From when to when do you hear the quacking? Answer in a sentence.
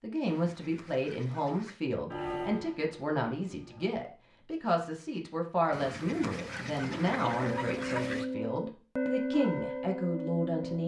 You can hear the quacking from 0.2 to 1.8 s and from 5.7 to 8.3 s.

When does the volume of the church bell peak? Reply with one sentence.
The loudest moment of the church bell is at 9 seconds.